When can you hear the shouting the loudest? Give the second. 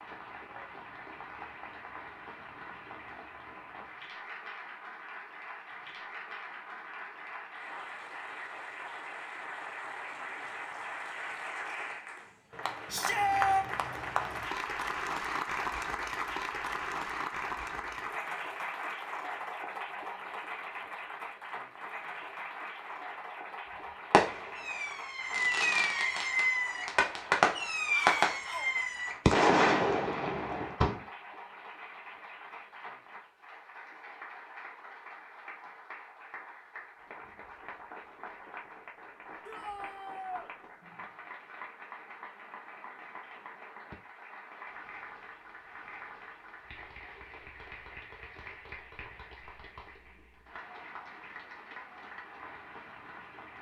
13 s.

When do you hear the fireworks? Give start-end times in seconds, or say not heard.
24.1-31.0.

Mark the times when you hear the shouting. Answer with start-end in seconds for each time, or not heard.
12.9-13.7, 27.9-28.7, 39.5-40.5.